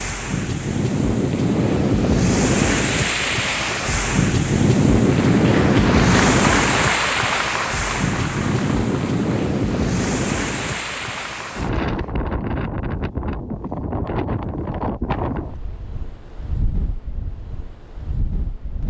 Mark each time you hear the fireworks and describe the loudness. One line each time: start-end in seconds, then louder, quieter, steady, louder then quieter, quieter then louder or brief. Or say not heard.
not heard.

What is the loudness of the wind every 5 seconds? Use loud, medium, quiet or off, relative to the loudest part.
loud, loud, medium, quiet.